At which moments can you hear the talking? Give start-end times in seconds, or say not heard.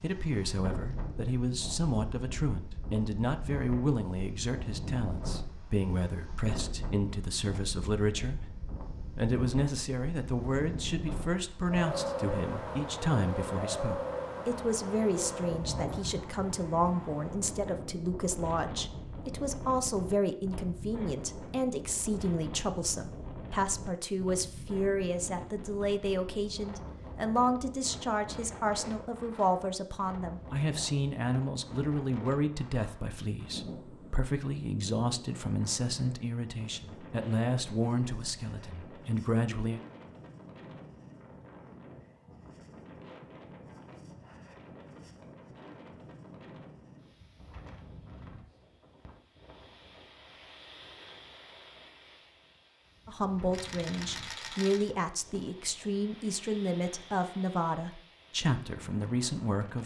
0.0-8.4, 9.2-39.8, 53.0-59.8.